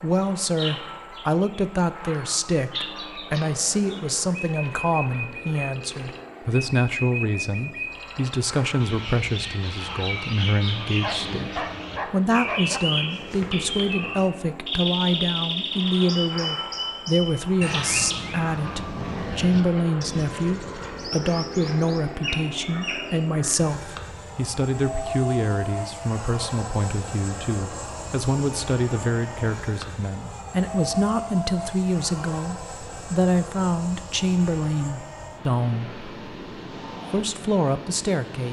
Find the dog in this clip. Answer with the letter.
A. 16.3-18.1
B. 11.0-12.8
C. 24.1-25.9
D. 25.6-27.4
B.